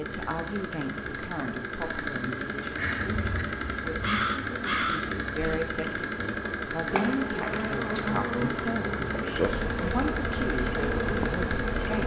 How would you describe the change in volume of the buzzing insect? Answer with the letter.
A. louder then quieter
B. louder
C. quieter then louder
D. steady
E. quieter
B.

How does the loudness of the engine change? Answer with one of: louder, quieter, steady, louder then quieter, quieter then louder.
steady.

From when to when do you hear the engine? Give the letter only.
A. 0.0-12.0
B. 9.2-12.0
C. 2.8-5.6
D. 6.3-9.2
A.